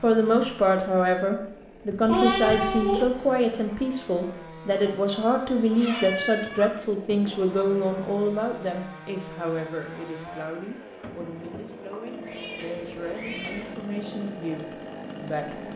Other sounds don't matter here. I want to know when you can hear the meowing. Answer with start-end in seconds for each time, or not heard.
2.0-3.1, 5.7-7.2, 12.2-13.8.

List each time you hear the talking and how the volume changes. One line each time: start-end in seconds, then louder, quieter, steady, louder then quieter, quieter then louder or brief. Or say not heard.
0.0-15.6 quieter.